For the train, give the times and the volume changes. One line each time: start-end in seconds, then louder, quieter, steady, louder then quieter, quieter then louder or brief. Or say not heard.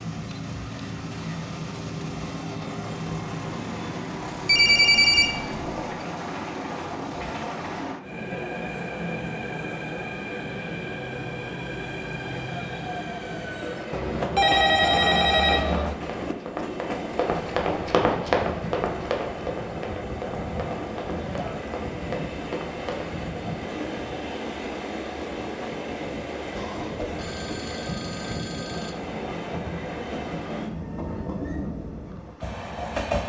0.0-33.2 steady.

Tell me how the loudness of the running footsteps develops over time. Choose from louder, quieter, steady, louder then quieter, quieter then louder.
louder then quieter.